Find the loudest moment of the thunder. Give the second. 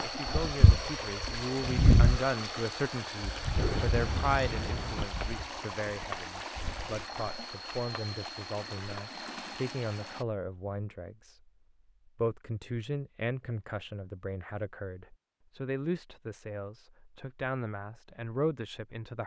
4 s.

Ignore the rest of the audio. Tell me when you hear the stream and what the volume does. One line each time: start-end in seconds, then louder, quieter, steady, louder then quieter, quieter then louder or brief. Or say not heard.
0.0-10.2 quieter.